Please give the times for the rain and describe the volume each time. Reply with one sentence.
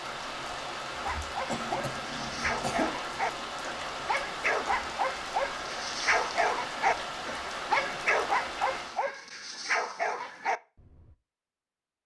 You can hear the rain from 0.0 to 9.1 s, at a steady volume.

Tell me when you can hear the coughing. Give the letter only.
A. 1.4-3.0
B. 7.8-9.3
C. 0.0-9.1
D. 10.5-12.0
A.